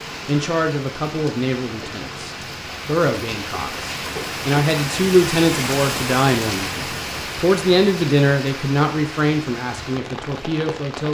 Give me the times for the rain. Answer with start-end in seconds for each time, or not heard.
0.0-11.0.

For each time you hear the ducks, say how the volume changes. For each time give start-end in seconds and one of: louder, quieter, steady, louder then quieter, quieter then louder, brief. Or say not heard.
not heard.